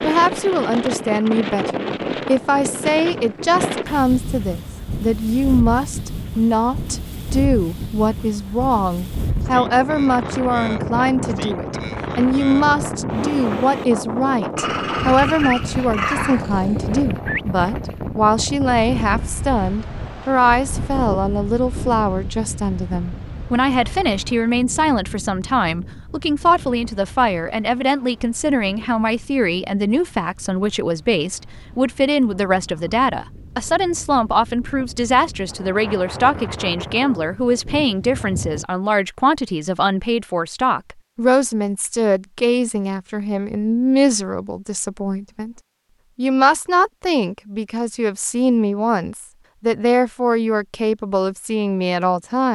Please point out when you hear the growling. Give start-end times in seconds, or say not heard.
14.6-17.1.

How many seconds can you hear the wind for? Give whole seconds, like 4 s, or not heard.
39 s.